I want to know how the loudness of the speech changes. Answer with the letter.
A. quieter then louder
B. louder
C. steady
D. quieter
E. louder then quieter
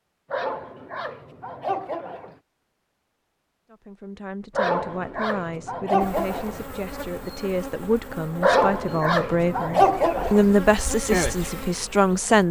B.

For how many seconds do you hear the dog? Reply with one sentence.
You can hear the dog for 6 seconds altogether.